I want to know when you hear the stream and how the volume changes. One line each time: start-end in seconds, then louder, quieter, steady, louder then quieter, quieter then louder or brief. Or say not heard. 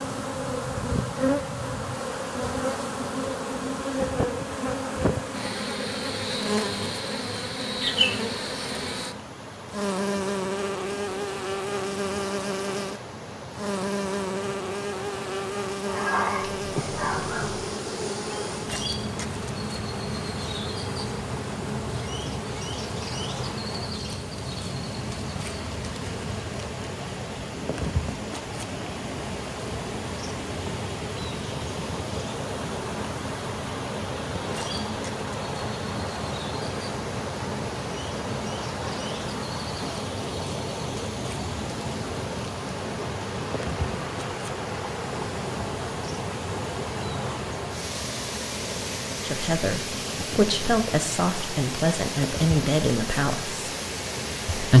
0.0-54.7 louder.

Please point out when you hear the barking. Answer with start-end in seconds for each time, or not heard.
15.8-17.6.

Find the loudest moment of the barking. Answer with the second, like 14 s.
16 s.